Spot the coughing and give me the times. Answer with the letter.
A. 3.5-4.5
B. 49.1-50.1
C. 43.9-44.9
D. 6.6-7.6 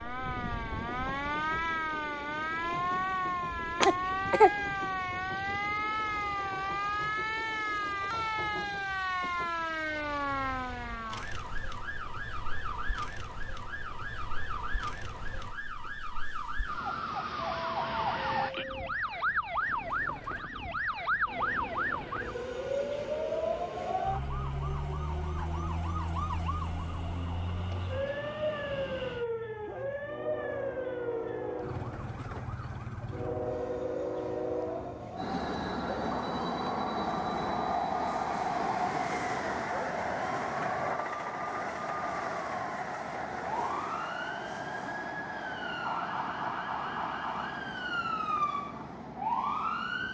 A.